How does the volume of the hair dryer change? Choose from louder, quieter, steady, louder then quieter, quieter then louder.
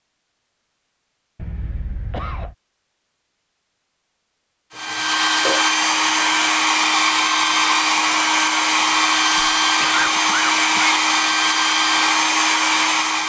steady.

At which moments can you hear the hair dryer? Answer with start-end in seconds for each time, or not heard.
4.7-13.2.